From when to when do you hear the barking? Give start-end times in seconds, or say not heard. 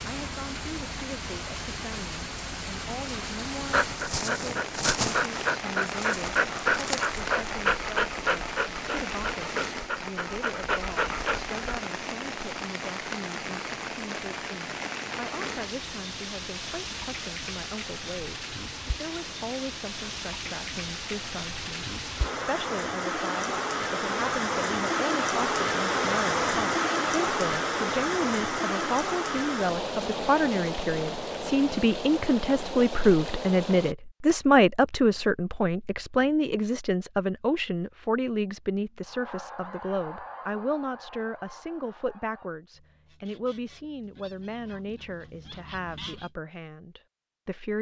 3.6-11.8.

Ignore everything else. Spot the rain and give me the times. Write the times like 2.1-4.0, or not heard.
0.0-34.0.